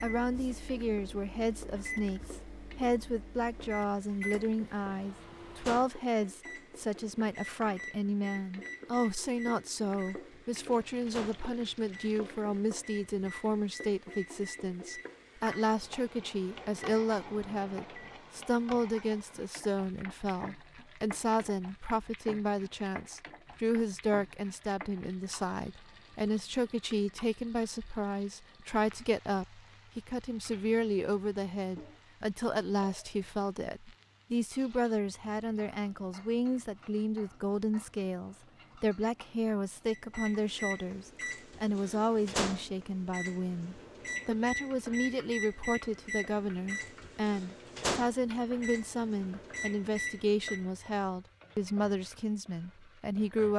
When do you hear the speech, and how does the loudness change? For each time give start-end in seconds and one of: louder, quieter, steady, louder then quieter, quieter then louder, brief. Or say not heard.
0.0-53.5 steady.